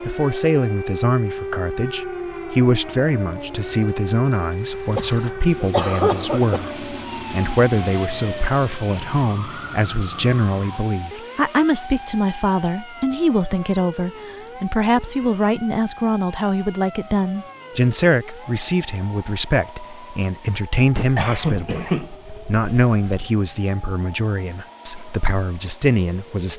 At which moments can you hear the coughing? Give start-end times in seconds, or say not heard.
5.0-6.8, 20.9-23.2.